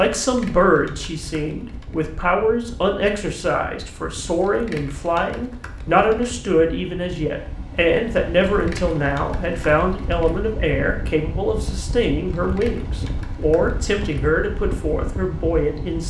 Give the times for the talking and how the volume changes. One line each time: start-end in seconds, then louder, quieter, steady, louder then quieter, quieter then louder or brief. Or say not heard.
0.0-16.0 steady.